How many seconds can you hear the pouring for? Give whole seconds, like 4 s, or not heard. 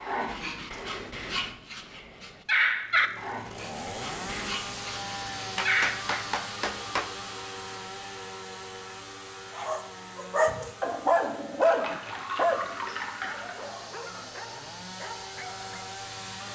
2 s.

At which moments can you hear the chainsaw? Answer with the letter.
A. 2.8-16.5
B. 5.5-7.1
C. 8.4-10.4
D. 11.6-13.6
A.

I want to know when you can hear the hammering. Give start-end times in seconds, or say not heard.
5.5-7.1.